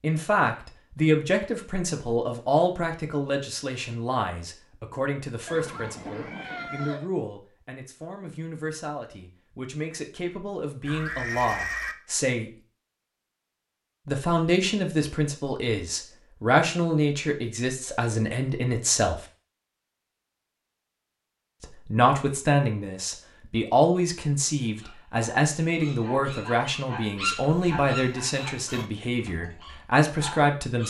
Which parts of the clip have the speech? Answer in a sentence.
You can hear the speech from 0.0 to 12.5 s, from 14.1 to 19.2 s and from 21.6 to 30.8 s.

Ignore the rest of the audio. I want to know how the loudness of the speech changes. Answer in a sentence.
The volume of the speech goes down, then up.